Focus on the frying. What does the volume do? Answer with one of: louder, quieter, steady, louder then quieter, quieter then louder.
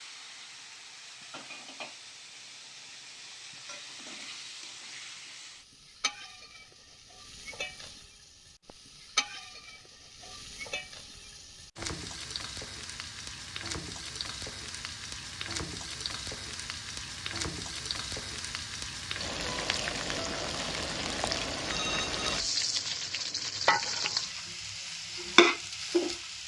louder.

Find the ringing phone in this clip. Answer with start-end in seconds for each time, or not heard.
21.6-22.4.